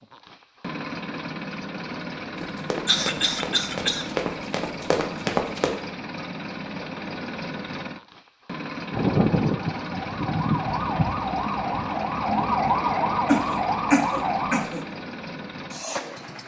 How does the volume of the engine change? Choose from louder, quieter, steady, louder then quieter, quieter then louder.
steady.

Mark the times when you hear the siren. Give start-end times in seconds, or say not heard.
8.9-14.7.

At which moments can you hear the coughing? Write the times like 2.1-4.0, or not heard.
2.9-4.1, 13.2-14.8.